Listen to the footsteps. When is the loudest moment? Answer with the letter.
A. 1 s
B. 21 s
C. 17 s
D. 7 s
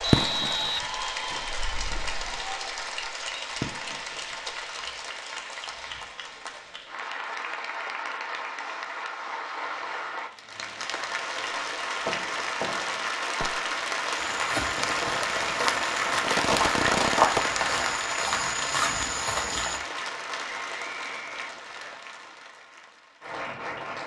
C.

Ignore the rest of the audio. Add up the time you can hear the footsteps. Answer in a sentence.
You can hear the footsteps for 6 seconds altogether.